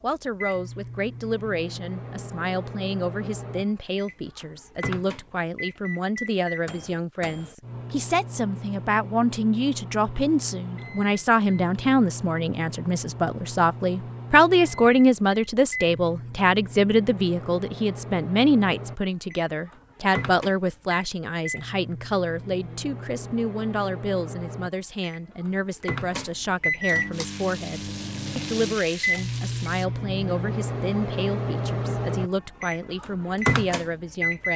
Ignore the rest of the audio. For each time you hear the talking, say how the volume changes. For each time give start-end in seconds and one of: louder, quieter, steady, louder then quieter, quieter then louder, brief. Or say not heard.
0.0-34.5 louder then quieter.